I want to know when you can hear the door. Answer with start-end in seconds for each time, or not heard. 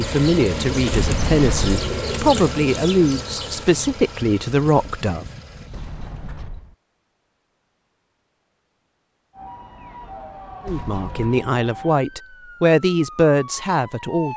0.9-1.8, 5.7-6.8, 10.7-11.4.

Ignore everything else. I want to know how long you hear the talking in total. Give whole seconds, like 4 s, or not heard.
9 s.